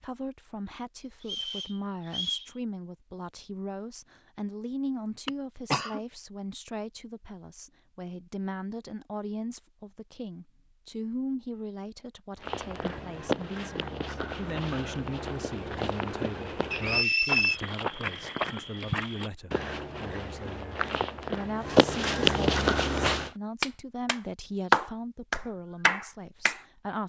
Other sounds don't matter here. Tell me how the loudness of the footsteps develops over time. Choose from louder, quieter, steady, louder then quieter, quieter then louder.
louder.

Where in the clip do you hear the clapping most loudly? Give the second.
25 s.